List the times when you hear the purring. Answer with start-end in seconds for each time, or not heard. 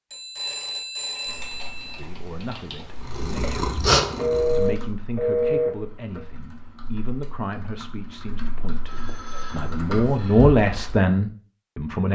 3.0-4.8.